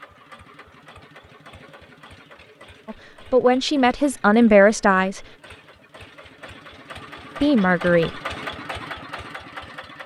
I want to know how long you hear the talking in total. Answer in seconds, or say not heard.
3 s.